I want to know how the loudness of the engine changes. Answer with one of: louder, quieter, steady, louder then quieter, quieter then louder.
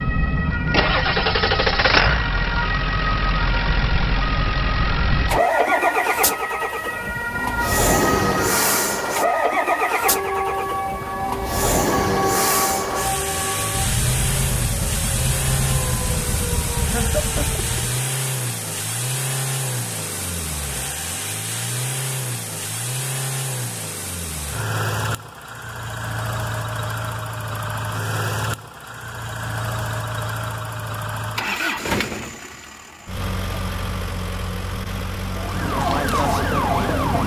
quieter.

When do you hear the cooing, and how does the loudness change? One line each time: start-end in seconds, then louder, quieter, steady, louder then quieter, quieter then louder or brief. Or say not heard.
not heard.